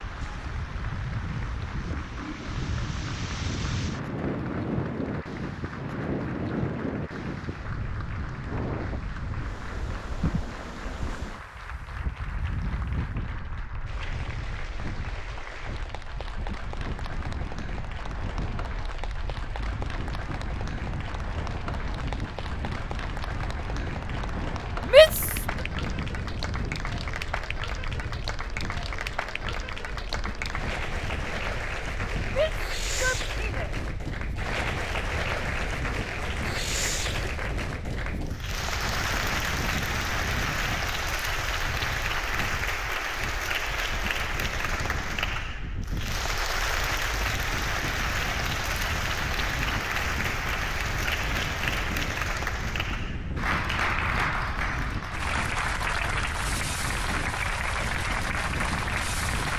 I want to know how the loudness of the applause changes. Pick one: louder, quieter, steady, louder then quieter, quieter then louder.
louder.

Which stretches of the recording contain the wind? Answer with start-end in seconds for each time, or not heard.
0.0-59.5.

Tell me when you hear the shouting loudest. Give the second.
25 s.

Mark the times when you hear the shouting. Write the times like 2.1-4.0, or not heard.
24.9-25.4, 32.2-33.7.